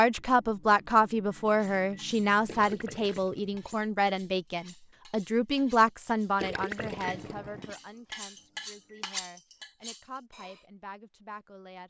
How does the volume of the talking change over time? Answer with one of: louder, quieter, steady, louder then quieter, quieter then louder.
quieter.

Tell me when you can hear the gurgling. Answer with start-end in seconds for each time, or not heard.
2.5-3.8, 6.3-7.7.